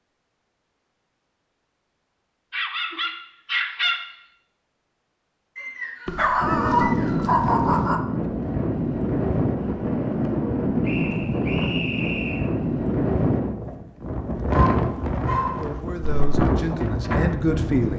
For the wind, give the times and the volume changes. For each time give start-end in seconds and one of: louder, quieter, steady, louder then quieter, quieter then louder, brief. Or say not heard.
6.4-17.9 steady.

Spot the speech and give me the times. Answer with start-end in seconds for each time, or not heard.
15.6-17.9.